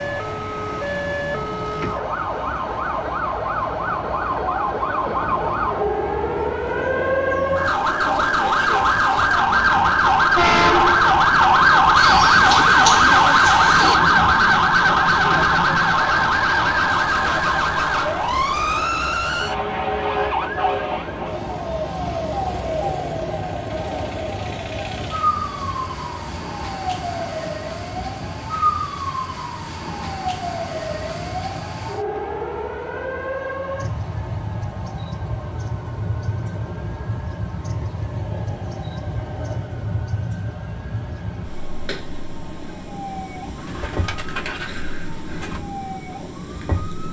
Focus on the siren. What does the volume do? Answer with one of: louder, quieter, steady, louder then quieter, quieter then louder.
louder then quieter.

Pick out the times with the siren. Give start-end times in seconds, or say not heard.
0.0-47.0.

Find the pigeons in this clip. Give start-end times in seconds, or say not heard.
11.9-13.9, 43.5-45.6.